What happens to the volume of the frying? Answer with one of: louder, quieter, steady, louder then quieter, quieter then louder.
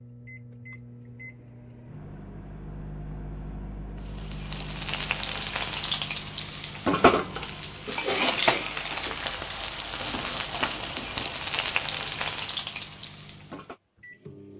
steady.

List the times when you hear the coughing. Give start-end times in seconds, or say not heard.
7.8-8.8.